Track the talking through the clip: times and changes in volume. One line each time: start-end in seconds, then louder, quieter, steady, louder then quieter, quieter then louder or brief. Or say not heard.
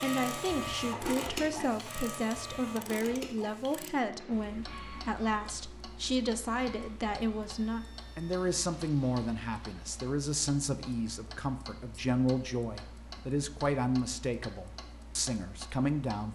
0.0-16.3 steady.